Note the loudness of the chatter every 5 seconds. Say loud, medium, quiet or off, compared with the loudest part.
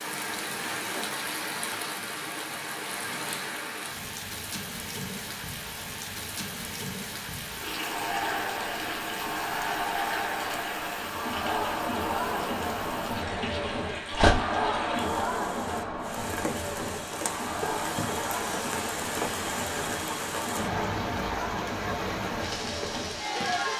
off, loud, loud, loud, loud.